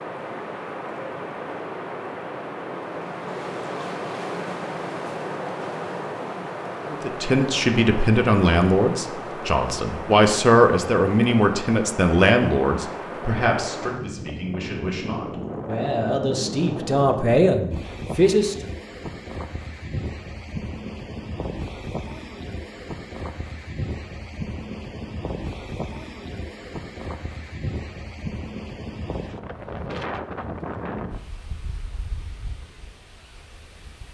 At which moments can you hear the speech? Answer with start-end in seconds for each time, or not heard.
6.8-18.6.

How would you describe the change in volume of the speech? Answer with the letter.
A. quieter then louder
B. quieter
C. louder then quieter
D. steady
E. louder
A.